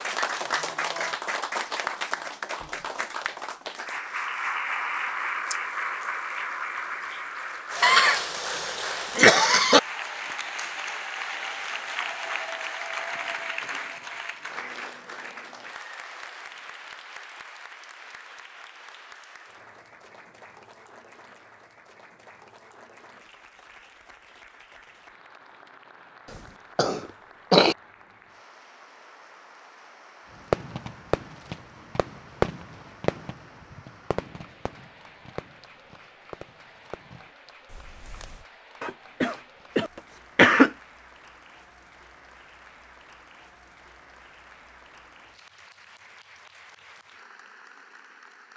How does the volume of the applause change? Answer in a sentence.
The volume of the applause goes down.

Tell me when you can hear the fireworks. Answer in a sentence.
You can hear the fireworks from 30.5 to 38.5 s.